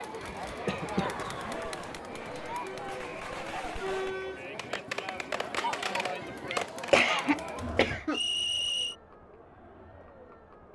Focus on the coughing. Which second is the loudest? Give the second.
7 s.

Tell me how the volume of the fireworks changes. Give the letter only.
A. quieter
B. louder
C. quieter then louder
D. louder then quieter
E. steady
B.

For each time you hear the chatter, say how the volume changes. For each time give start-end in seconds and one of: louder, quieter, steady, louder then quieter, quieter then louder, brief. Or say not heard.
0.0-10.7 quieter.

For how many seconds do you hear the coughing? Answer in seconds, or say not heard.
4 s.